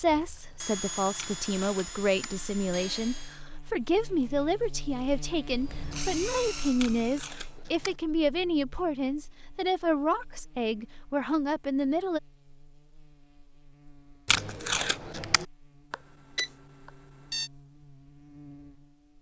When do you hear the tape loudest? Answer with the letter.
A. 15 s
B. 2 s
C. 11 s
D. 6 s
A.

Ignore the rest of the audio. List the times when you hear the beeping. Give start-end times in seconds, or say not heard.
15.9-17.5.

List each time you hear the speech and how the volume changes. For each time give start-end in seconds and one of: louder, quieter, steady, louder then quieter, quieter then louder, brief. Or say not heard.
0.0-12.2 steady.